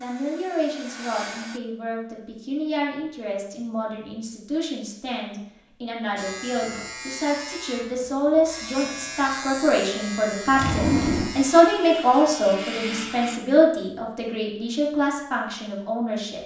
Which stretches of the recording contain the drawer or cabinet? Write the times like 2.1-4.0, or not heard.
10.5-11.3.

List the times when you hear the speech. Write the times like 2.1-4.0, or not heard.
0.0-16.4.